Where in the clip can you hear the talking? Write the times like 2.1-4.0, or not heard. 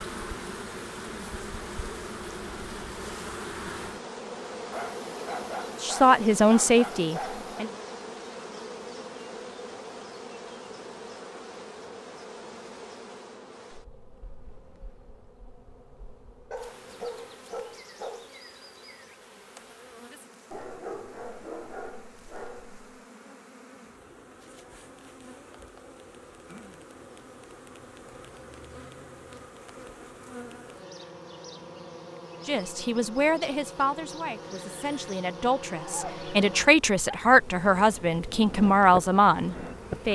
5.8-7.7, 32.5-40.0.